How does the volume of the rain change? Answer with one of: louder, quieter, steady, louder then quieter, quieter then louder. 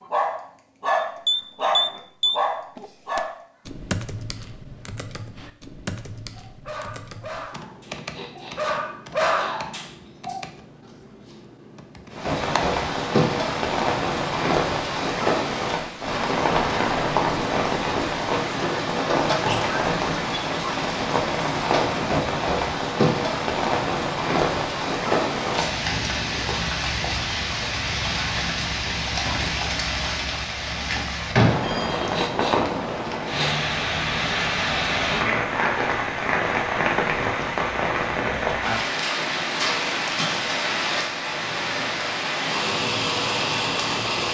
steady.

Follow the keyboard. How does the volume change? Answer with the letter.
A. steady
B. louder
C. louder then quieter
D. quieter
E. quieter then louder
D.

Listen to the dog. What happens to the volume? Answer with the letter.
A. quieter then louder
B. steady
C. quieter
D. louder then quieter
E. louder
A.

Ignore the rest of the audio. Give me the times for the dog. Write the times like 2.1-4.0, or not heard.
0.0-3.5, 6.3-10.4.